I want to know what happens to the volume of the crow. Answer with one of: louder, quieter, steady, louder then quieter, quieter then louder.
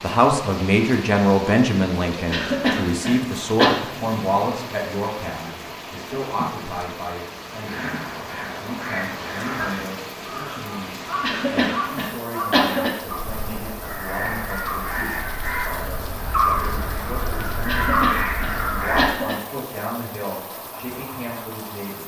louder.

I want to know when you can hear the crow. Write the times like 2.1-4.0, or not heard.
7.6-19.1.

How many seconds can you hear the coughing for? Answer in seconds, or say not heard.
5 s.